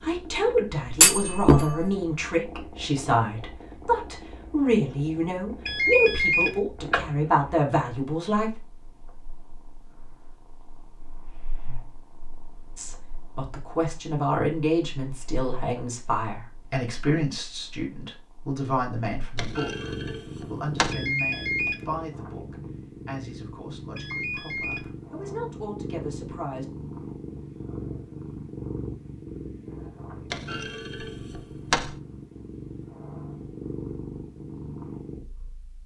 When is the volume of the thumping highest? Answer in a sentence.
The volume of the thumping peaks at 1 second.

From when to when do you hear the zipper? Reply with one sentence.
The zipper can't be heard in this clip.